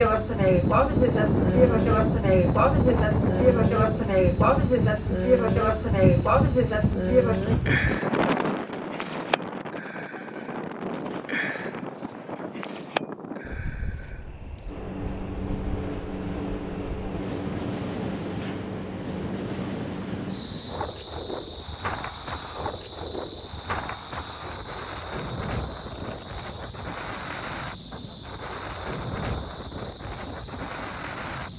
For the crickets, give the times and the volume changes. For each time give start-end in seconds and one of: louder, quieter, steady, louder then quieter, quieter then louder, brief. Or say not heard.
0.0-31.5 quieter.